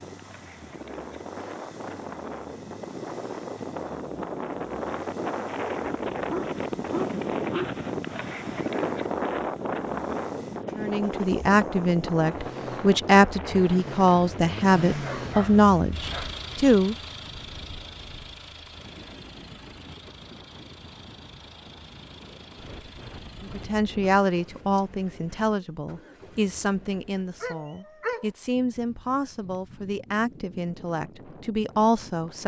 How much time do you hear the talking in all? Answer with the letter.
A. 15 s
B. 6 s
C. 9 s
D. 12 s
A.